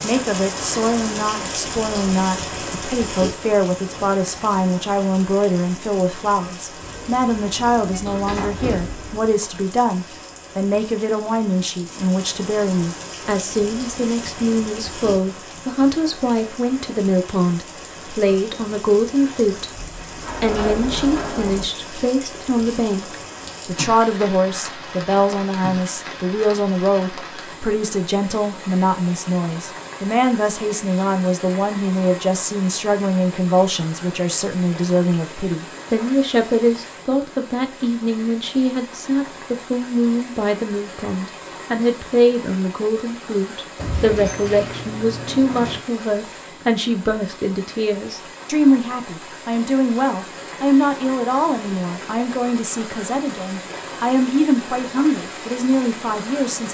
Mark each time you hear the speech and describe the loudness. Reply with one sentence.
You can hear the speech from 0.0 to 56.7 s, at a steady volume.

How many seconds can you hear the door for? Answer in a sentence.
You can hear the door for 6 seconds altogether.